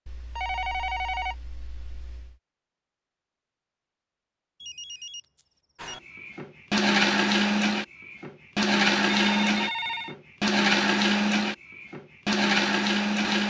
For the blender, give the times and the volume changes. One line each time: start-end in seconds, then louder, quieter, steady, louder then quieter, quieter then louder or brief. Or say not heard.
5.8-13.4 steady.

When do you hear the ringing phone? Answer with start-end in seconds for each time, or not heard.
0.1-2.4, 4.6-6.0, 9.1-10.2.